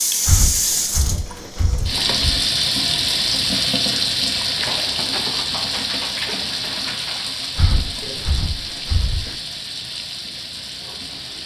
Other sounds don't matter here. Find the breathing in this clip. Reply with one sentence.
You can hear the breathing from 0.2 to 2.4 s and from 7.5 to 9.3 s.